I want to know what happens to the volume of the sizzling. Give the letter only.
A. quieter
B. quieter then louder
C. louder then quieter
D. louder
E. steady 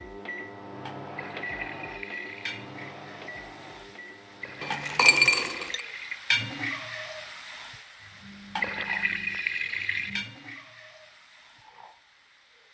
C.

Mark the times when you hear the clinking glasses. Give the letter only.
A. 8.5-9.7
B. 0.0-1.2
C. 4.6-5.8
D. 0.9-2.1
C.